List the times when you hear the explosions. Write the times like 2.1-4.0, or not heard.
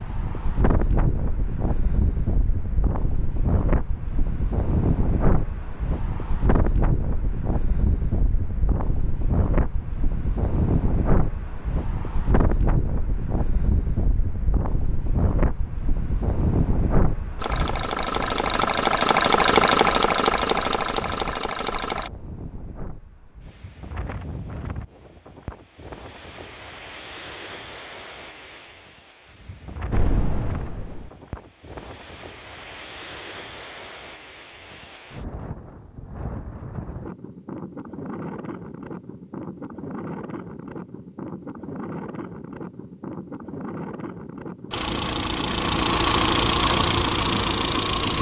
29.9-31.1.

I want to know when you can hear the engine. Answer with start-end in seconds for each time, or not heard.
17.4-22.1, 44.7-48.1.